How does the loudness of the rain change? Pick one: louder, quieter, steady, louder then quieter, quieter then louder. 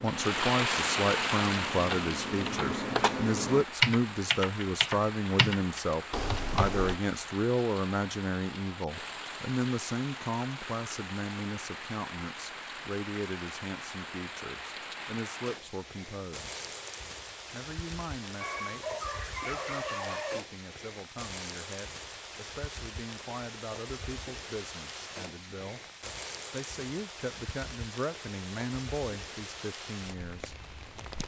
quieter.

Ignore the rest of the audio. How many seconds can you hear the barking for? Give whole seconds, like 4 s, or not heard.
2 s.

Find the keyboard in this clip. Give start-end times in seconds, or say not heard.
0.0-7.0.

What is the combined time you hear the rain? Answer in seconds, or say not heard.
31 s.